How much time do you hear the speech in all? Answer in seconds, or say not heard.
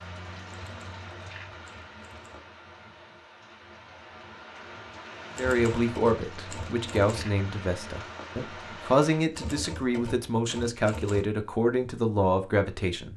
8 s.